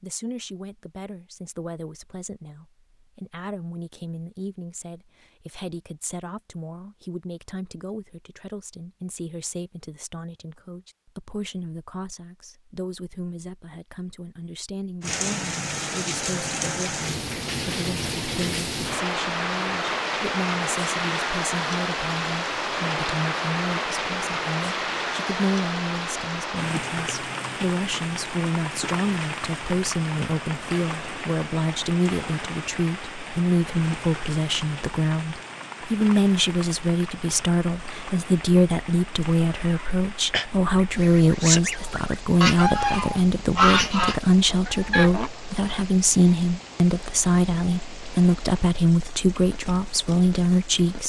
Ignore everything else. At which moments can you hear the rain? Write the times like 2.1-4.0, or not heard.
15.0-51.0.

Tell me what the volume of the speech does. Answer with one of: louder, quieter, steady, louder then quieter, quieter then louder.
louder.